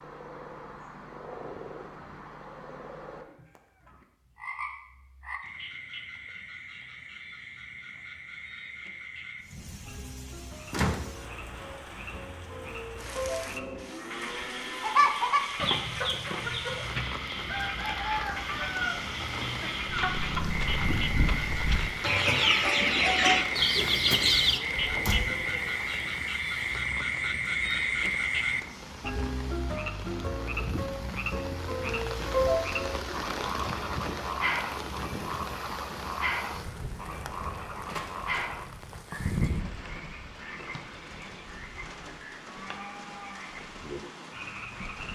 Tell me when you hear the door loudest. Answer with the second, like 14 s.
11 s.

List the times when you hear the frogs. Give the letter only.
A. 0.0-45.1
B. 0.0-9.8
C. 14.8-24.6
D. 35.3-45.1
A.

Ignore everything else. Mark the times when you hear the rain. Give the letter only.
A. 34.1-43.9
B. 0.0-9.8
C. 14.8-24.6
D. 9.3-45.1
D.